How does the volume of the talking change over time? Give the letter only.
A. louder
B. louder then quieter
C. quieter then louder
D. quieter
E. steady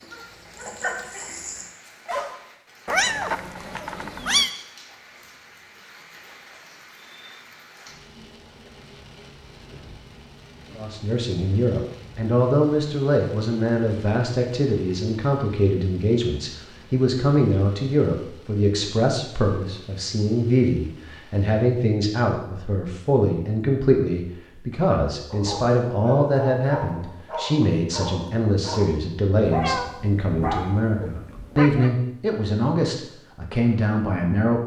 E.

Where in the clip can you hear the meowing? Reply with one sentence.
You can hear the meowing from 2.9 to 4.5 s and from 29.4 to 31.9 s.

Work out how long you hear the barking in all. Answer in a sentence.
The barking can be heard for 8 seconds in total.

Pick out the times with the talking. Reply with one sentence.
You can hear the talking from 10.8 to 34.6 s.